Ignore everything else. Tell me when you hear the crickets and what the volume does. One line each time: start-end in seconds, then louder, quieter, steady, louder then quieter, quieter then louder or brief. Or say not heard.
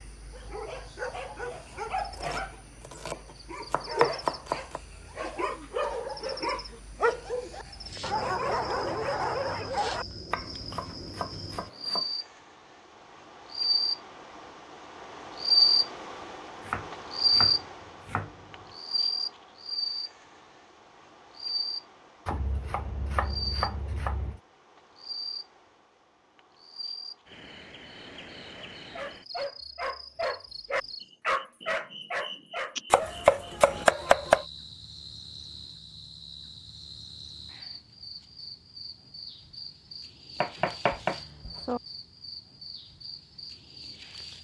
0.0-44.3 louder then quieter.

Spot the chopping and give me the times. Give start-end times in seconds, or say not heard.
2.2-4.8, 10.3-12.1, 16.6-18.4, 22.2-24.4, 32.9-34.5, 40.4-41.8.